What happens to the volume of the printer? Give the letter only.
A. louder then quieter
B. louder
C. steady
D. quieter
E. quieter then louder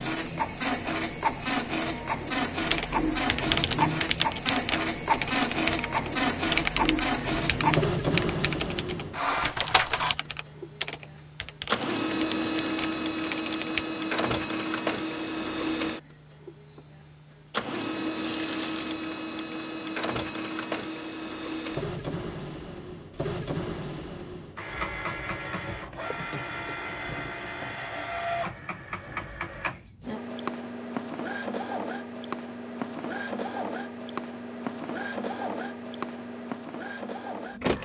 D.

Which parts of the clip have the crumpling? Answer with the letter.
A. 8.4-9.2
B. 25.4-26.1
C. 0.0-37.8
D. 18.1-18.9
D.